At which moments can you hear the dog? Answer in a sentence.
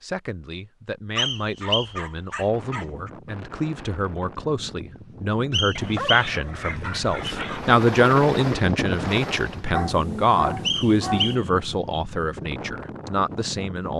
The dog can be heard from 1.1 to 3.1 s, from 5.8 to 7.8 s and from 9.7 to 11.3 s.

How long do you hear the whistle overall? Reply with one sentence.
You can hear the whistle for 3 seconds altogether.